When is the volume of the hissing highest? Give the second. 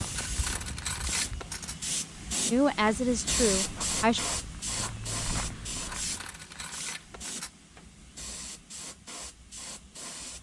4 s.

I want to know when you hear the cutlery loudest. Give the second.
1 s.